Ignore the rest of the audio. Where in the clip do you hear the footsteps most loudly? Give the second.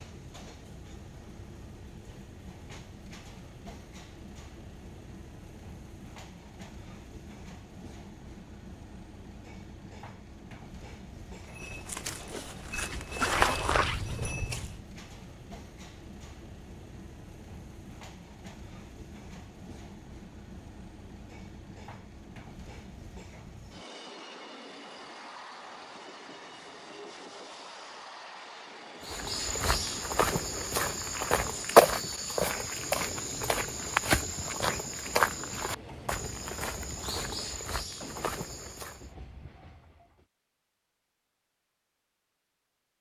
32 s.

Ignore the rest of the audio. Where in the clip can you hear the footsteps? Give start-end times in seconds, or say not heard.
11.4-14.8, 29.0-39.0.